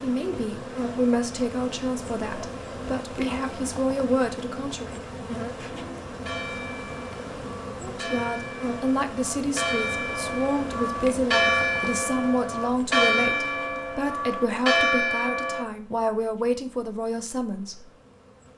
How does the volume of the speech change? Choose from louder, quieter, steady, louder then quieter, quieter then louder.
steady.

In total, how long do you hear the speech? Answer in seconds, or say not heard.
15 s.